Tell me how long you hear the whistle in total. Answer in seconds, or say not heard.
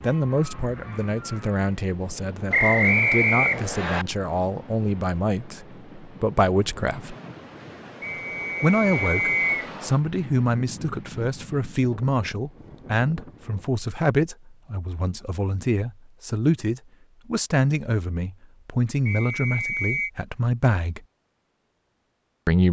4 s.